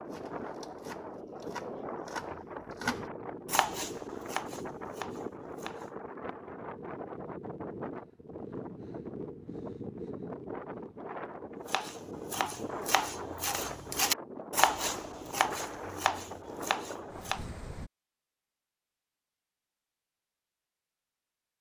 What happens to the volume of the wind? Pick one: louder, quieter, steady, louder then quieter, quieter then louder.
steady.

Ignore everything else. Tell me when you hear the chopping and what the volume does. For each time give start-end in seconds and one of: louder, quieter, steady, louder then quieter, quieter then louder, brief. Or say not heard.
0.1-5.9 louder then quieter
11.7-17.4 louder then quieter.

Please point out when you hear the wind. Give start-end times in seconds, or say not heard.
0.0-17.9.